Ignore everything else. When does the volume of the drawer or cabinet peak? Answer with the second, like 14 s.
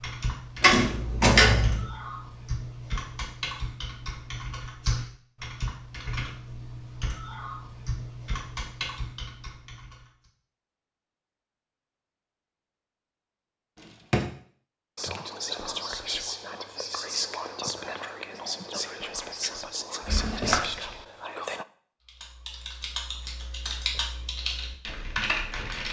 1 s.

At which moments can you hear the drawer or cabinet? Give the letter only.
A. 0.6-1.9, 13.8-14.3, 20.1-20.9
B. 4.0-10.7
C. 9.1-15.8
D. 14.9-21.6
A.